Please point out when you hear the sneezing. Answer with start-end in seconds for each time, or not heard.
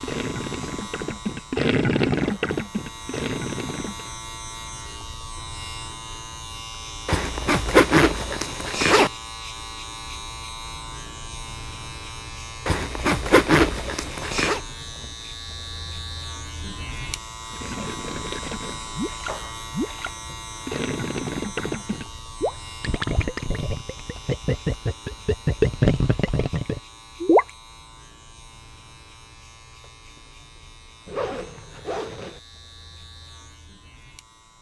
not heard.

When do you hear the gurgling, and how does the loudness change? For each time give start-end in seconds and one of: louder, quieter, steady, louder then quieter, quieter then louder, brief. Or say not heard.
0.0-4.0 louder then quieter
17.5-27.5 louder.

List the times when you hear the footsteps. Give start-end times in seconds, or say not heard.
not heard.